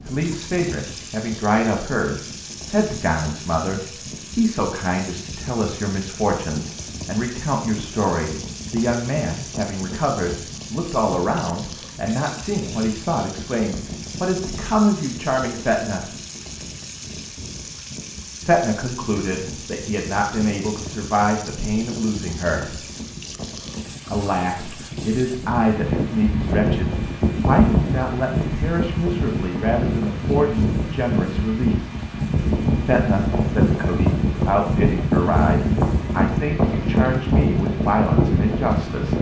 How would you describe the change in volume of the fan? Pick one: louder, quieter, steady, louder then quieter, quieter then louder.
louder.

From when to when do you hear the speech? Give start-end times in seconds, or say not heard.
0.1-16.1, 18.4-22.8, 24.1-31.8, 32.8-39.1.